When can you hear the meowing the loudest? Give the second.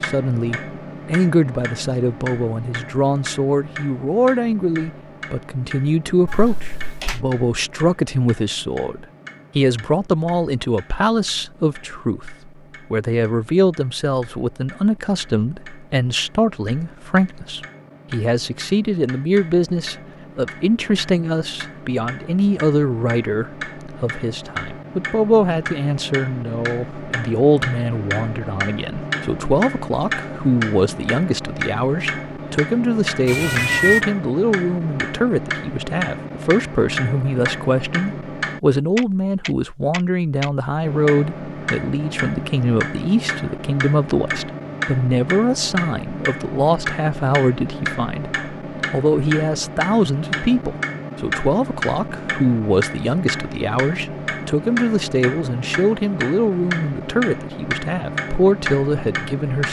34 s.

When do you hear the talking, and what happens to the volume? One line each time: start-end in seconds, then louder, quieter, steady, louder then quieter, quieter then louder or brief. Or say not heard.
0.0-59.6 steady.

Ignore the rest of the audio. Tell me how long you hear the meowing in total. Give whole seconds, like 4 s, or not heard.
2 s.